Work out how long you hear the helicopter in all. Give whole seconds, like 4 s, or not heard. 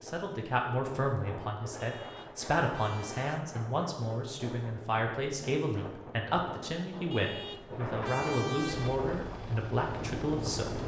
2 s.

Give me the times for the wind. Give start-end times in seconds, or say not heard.
0.0-10.8.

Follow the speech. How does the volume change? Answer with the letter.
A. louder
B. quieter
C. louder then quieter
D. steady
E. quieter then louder
D.